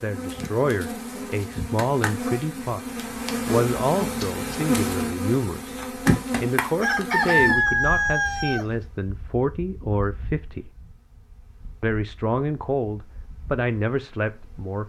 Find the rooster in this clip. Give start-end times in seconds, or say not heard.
6.8-8.7.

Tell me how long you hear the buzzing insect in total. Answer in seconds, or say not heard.
15 s.